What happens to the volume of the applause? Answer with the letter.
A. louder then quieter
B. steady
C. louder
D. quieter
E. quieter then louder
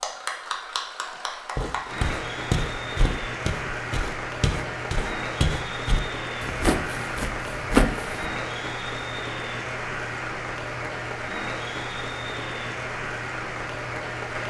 B.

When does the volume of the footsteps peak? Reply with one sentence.
The loudest moment of the footsteps is at 8 seconds.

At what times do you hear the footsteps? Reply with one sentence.
The footsteps can be heard from 1.6 to 8.2 s.